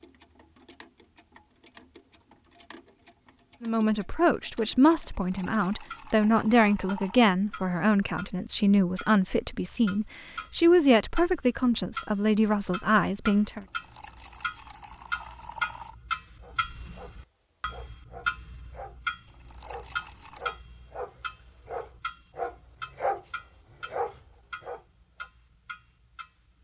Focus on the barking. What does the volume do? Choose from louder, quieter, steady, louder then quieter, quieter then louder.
louder.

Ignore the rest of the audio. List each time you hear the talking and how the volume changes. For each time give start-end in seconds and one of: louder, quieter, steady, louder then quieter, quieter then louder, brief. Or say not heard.
3.6-13.7 steady.